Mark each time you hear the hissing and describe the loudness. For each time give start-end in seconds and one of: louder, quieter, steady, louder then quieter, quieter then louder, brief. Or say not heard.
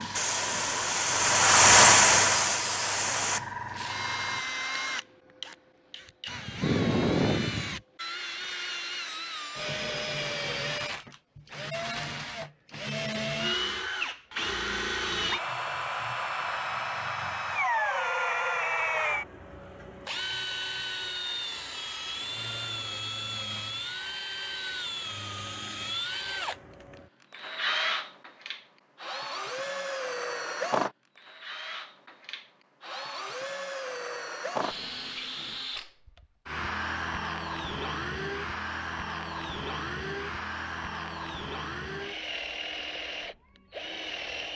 0.0-4.4 louder then quieter.